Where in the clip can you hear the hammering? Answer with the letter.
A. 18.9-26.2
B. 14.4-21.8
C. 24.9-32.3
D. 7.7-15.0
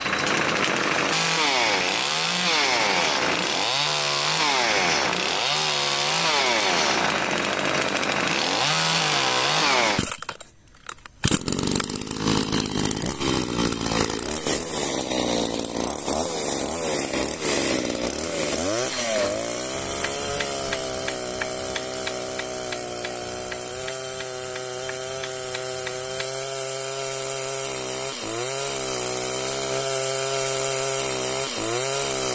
A.